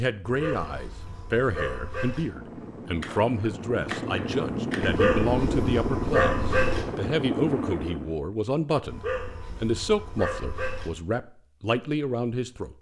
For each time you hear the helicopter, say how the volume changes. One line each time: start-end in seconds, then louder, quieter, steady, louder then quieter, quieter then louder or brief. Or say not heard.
2.1-8.2 louder.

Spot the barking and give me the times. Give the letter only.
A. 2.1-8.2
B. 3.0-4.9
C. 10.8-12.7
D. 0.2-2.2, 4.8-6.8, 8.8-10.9
D.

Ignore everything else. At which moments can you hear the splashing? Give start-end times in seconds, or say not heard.
3.0-4.9.